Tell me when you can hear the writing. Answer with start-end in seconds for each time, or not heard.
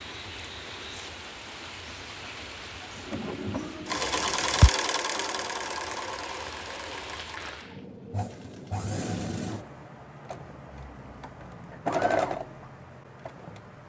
not heard.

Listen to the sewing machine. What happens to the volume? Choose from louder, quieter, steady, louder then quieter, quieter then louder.
quieter then louder.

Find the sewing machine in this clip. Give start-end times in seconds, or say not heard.
3.0-13.8.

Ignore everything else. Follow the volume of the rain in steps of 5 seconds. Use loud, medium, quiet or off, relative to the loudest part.
loud, loud, off.